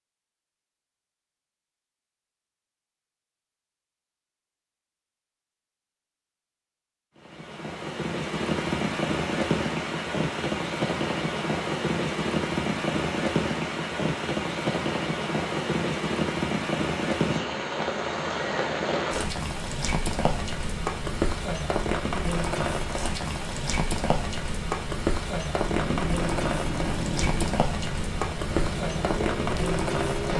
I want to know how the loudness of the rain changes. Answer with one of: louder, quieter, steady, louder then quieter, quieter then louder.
steady.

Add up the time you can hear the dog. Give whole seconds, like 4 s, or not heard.
not heard.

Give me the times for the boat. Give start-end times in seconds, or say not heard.
25.6-30.3.